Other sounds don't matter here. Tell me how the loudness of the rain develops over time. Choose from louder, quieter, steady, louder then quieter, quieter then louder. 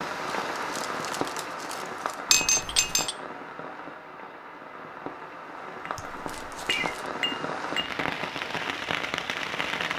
quieter then louder.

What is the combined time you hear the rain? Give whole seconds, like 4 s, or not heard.
10 s.